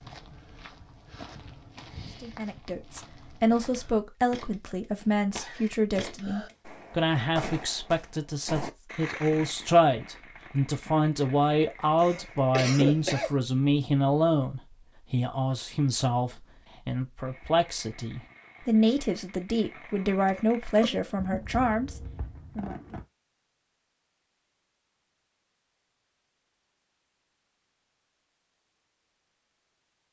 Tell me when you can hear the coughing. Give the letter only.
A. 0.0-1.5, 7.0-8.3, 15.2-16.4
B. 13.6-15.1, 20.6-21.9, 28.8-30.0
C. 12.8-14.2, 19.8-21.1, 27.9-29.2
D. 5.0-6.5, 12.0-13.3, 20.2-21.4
D.